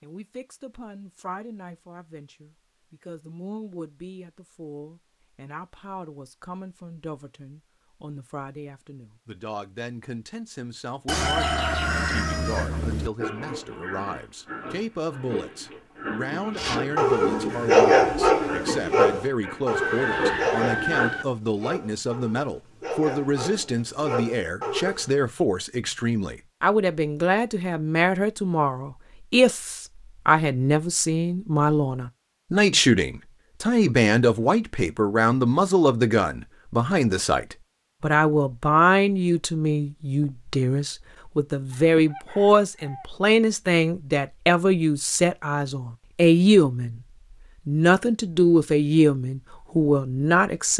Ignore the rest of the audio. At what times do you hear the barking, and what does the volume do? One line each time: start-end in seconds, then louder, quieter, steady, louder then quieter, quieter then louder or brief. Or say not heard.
16.6-25.1 quieter.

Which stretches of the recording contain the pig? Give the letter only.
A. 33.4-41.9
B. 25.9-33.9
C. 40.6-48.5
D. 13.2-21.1
D.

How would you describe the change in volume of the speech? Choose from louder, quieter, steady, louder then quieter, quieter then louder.
louder.